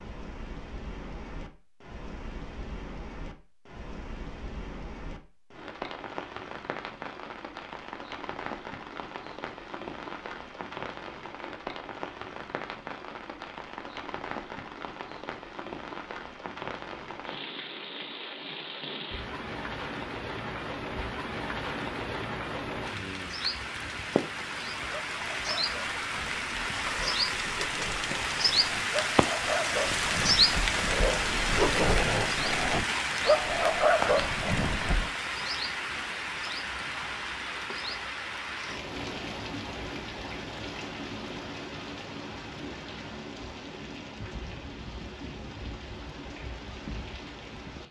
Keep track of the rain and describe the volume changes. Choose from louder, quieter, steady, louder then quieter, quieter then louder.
louder then quieter.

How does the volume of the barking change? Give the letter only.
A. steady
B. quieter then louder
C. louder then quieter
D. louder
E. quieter
D.